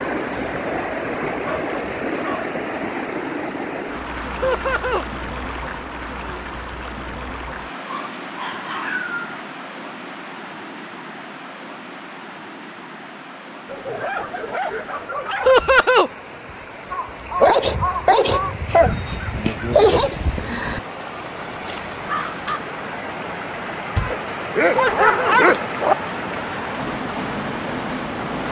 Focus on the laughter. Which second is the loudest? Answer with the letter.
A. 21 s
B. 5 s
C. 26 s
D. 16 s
D.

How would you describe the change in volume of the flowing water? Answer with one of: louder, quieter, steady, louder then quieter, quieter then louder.
quieter then louder.